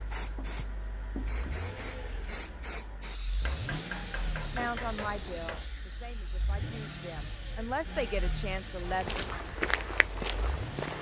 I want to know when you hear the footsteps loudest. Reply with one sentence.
The loudest moment of the footsteps is at 10 seconds.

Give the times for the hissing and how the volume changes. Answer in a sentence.
You can hear the hissing from 0.0 to 10.8 s, getting quieter.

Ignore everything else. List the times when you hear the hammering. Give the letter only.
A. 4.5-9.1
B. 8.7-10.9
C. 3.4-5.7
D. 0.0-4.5
C.